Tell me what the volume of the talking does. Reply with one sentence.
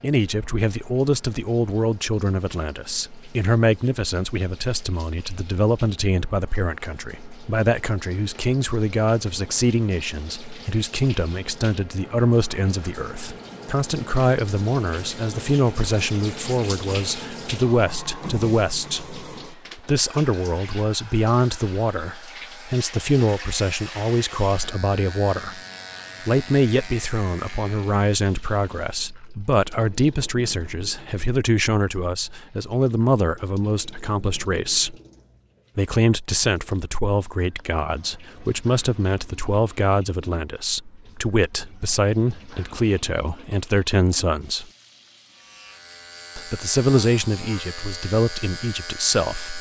The volume of the talking stays about the same.